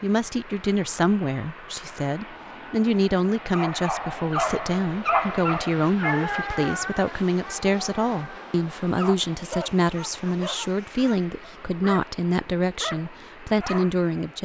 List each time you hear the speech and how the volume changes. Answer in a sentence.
The speech can be heard from 0.0 to 14.4 s, at a steady volume.